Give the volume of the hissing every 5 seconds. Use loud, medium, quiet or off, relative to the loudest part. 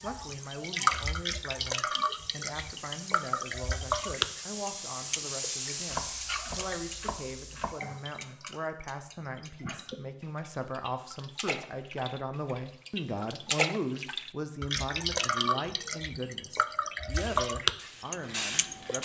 medium, loud, off, loud.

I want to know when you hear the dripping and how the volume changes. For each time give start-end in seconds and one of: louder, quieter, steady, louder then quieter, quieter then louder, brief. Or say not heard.
0.0-19.0 quieter then louder.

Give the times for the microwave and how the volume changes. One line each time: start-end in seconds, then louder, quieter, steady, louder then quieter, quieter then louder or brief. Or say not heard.
not heard.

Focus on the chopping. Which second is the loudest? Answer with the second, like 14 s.
6 s.